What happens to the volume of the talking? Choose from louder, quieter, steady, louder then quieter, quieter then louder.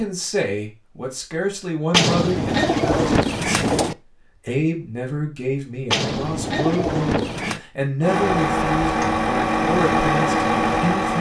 steady.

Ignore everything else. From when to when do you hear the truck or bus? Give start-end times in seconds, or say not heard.
8.0-11.1.